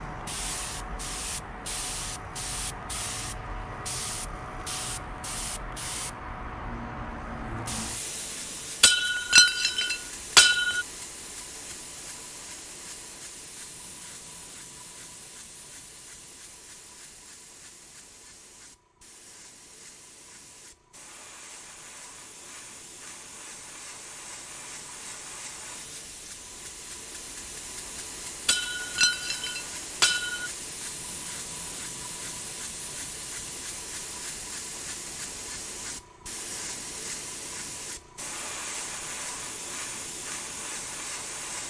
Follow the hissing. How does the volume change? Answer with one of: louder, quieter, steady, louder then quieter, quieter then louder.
quieter then louder.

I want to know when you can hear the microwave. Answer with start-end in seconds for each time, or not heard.
not heard.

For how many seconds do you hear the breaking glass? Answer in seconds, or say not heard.
4 s.